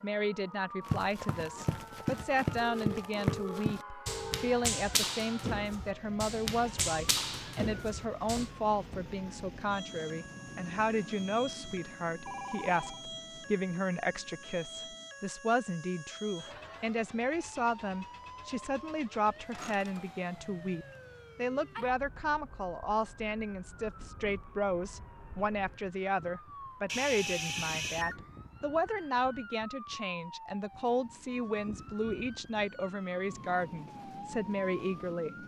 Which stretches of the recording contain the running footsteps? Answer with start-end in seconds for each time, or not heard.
0.8-8.5.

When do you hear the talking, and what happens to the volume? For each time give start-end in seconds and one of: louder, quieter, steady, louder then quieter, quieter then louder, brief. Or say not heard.
0.0-35.4 steady.